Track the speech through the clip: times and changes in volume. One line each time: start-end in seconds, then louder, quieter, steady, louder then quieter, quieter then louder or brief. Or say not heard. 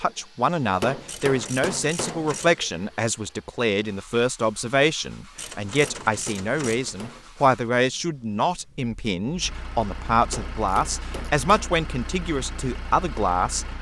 0.0-13.7 steady.